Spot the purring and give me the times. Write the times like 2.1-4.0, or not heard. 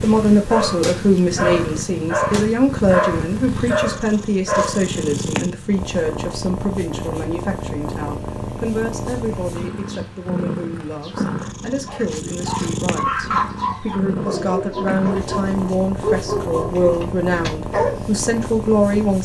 0.0-19.1.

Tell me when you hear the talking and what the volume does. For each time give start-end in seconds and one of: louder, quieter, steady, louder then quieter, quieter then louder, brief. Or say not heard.
0.0-19.1 quieter then louder.